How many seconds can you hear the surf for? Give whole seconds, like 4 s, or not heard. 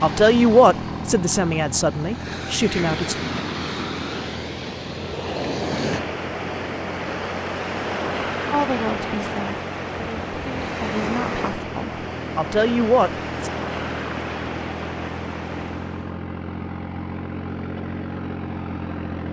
16 s.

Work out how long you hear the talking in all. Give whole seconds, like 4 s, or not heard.
8 s.